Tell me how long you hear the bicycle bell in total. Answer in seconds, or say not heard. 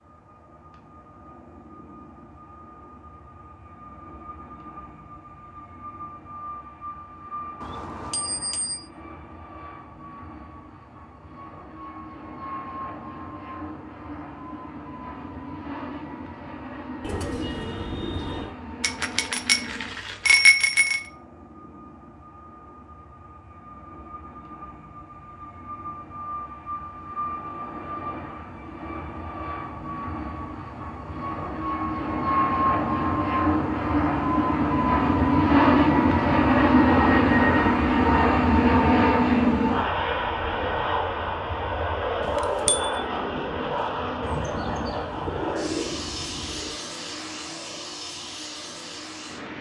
4 s.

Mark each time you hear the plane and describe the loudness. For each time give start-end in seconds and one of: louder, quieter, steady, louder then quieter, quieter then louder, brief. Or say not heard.
0.0-49.5 louder then quieter.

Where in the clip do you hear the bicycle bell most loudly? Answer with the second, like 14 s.
20 s.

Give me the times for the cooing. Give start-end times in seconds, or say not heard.
17.0-18.6, 44.2-46.8.